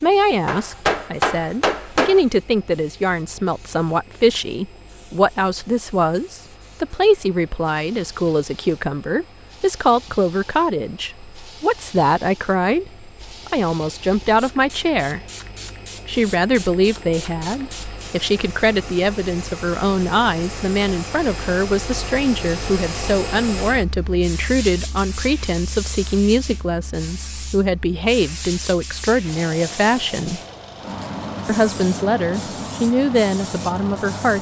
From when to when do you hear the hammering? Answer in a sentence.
The hammering can be heard from 0.5 to 2.2 s.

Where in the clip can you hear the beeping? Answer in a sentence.
You can't hear the beeping here.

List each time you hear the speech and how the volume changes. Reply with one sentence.
The speech can be heard from 0.0 to 15.2 s, at a steady volume; from 16.1 to 30.4 s, at a steady volume; and briefly from 31.4 to 34.3 s.